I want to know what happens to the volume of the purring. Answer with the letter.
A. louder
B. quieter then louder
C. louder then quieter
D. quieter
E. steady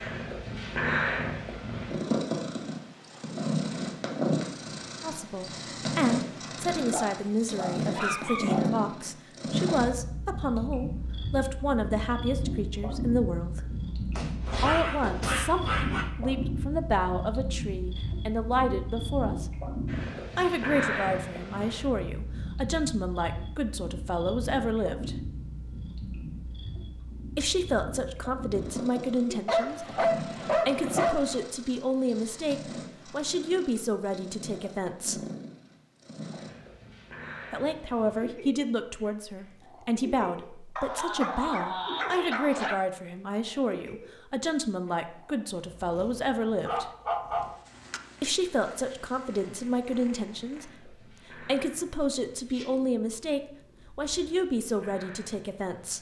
D.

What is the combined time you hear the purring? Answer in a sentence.
The purring can be heard for 56 seconds in total.